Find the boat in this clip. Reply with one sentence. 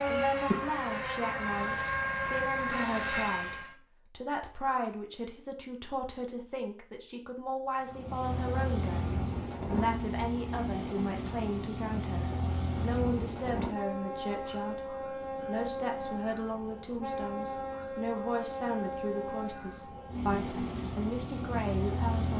The boat can be heard from 0.0 to 3.8 s and from 7.8 to 22.3 s.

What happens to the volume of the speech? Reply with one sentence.
The loudness of the speech stays about the same.